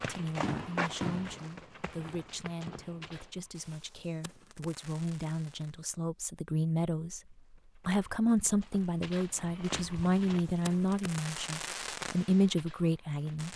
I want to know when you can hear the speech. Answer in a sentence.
You can hear the speech from 0.0 to 13.5 s.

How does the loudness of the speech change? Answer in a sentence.
The loudness of the speech goes up.